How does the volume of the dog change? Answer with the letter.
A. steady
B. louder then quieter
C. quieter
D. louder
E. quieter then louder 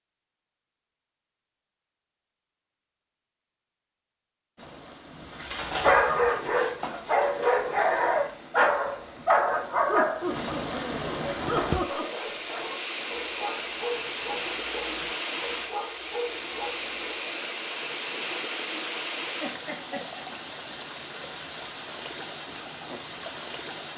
C.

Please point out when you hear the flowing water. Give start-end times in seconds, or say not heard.
4.5-23.9.